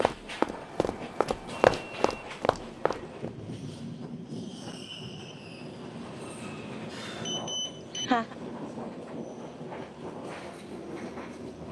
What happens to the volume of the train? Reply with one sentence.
The loudness of the train stays about the same.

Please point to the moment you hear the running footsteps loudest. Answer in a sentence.
The volume of the running footsteps peaks at 2 seconds.